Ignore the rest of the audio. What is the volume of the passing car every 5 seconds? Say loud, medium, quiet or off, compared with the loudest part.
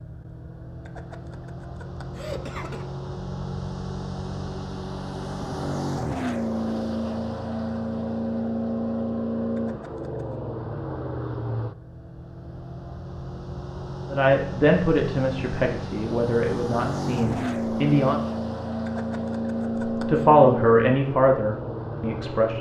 medium, loud, medium, loud, loud.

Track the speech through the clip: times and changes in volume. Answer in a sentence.
You can hear the speech from 14.1 to 18.2 s, getting quieter; and briefly from 19.9 to 22.5 s.